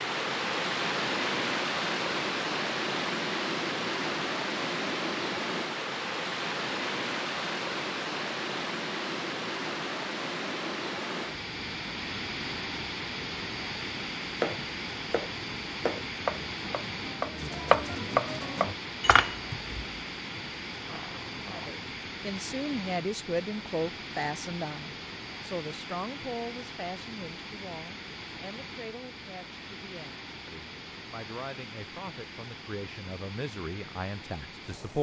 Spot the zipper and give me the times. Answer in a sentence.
The zipper can be heard from 20.9 to 21.8 s.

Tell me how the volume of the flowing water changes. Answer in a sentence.
The volume of the flowing water goes down.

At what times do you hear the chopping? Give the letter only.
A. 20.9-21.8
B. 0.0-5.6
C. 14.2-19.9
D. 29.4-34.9
C.